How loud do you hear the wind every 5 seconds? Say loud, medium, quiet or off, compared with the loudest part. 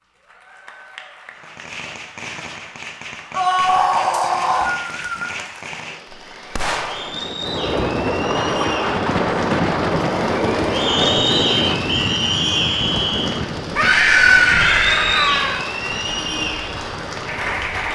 off, loud, loud, quiet.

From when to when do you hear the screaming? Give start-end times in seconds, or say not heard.
3.3-4.7, 13.8-15.6.